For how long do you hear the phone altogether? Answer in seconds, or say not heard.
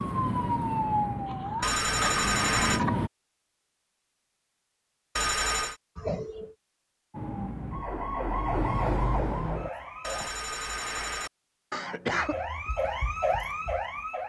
3 s.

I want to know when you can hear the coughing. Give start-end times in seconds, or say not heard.
1.2-3.0, 6.0-6.5, 11.7-12.3.